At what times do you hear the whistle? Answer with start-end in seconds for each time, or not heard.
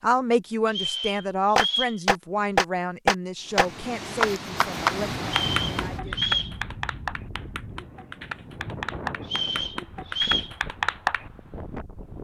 0.7-2.0, 5.5-6.5, 9.2-10.6.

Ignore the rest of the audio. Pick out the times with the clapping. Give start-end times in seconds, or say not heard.
1.6-11.3.